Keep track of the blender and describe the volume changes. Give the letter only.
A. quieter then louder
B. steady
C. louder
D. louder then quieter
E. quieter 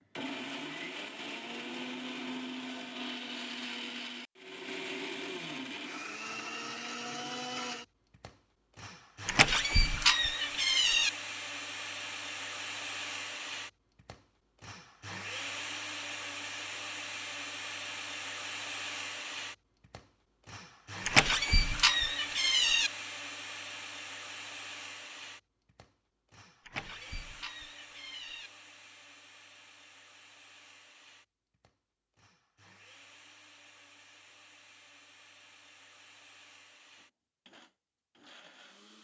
E.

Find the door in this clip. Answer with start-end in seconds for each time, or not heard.
9.2-11.1, 21.1-22.9, 26.6-28.5.